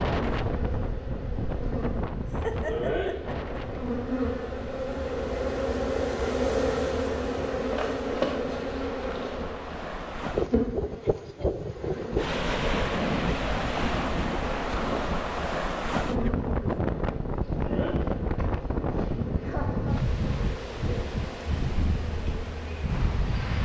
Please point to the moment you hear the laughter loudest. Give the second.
3 s.